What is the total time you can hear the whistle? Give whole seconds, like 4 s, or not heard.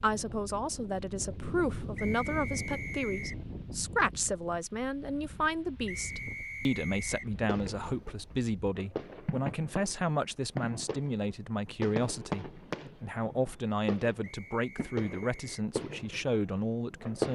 4 s.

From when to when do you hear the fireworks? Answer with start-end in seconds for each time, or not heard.
7.5-17.2.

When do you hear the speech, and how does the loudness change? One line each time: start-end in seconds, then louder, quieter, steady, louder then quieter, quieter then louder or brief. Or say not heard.
0.0-17.2 steady.